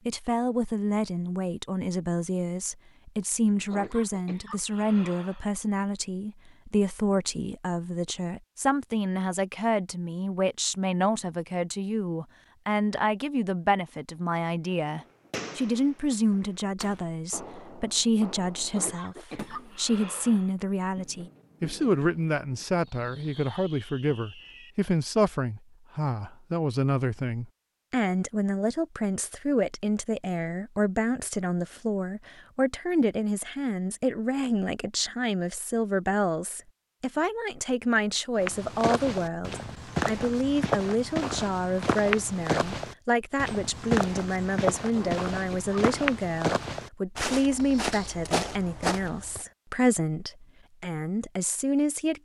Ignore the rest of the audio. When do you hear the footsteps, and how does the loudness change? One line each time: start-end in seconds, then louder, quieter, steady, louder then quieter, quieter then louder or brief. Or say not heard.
38.4-49.5 steady.